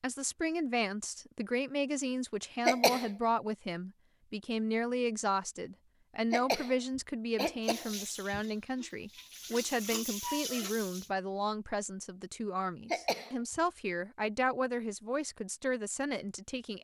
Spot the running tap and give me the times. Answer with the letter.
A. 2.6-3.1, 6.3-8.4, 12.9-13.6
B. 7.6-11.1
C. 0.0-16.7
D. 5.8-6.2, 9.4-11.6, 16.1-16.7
B.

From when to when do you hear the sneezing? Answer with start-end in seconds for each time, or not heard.
2.6-3.1, 6.3-8.4, 12.9-13.6.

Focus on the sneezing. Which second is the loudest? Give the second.
3 s.